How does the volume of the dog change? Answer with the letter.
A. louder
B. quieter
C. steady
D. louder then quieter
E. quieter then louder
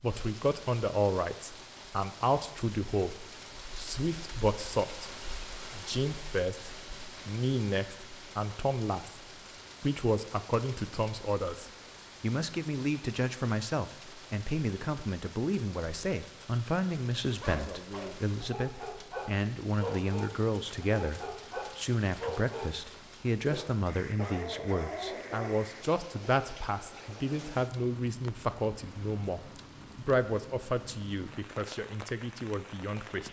C.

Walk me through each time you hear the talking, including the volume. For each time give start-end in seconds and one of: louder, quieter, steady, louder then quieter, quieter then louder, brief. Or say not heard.
0.0-33.2 steady.